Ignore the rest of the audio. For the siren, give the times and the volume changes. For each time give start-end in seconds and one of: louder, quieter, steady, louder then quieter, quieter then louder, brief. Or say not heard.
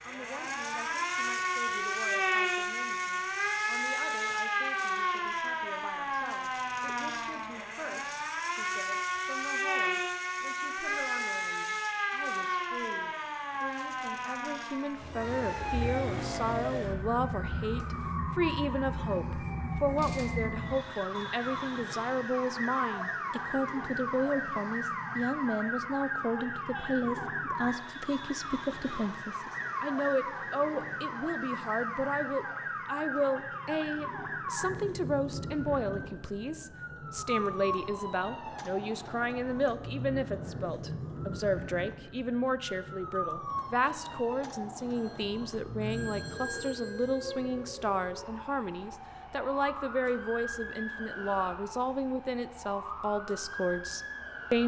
0.0-54.6 quieter.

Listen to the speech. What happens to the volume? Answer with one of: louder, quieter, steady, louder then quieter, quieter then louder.
louder.